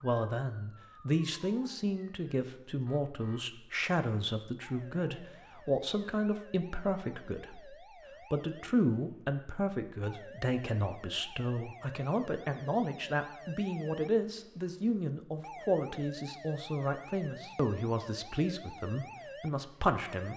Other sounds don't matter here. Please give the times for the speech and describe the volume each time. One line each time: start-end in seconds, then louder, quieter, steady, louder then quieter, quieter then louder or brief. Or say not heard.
0.0-20.3 steady.